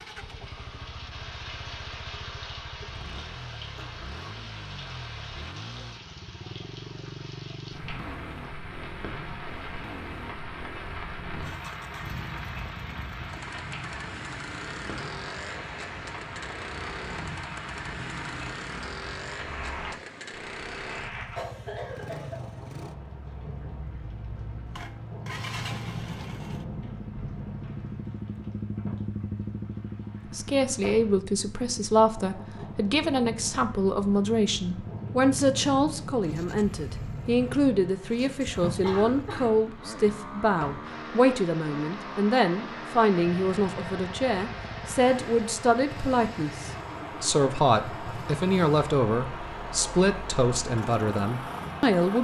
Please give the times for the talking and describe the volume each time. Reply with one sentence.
The talking can be heard from 30.3 to 52.2 s, at a steady volume.